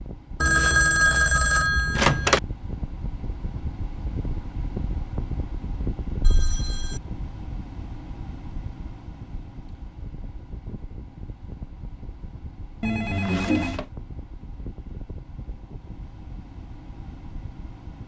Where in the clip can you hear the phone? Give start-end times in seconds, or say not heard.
0.4-2.4, 6.2-7.0, 12.8-13.8.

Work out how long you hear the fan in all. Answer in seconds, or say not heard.
18 s.